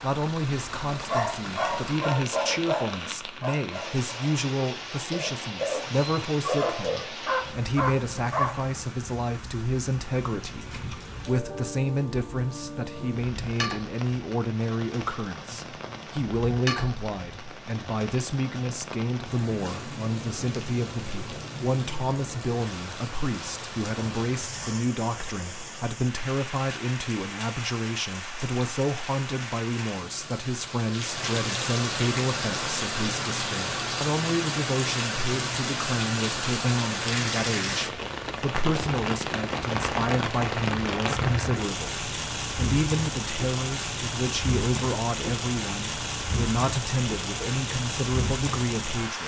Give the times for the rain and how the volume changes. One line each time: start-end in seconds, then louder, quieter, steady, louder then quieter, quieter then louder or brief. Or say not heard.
0.0-49.2 louder.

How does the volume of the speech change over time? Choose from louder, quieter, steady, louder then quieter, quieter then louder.
steady.